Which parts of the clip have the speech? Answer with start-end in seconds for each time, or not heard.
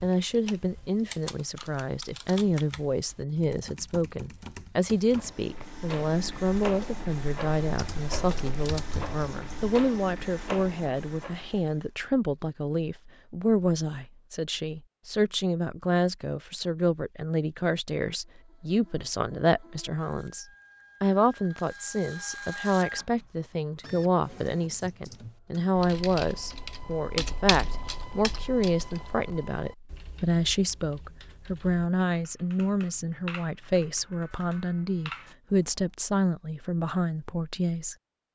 0.0-38.0.